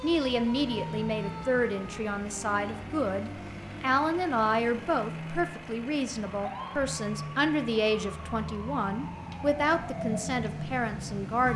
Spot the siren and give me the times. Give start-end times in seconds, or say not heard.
0.0-11.5.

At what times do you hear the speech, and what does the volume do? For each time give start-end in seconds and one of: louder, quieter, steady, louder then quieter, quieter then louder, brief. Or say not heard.
0.0-11.5 steady.